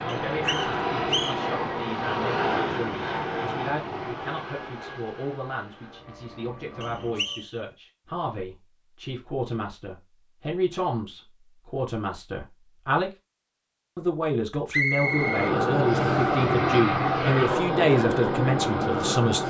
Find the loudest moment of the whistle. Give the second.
15 s.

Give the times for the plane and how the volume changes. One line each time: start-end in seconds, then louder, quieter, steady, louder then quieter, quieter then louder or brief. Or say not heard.
0.0-7.5 quieter
14.9-19.4 steady.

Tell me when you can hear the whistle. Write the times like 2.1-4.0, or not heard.
0.1-1.4, 6.8-7.5, 14.7-16.4.